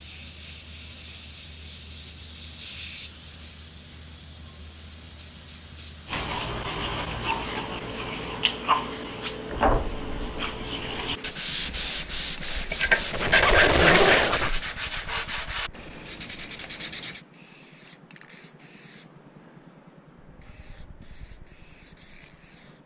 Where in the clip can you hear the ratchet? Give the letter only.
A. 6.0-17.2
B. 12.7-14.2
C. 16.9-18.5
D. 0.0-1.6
B.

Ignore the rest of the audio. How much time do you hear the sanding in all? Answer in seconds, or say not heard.
11 s.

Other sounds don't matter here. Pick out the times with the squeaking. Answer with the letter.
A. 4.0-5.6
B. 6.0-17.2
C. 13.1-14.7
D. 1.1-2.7
C.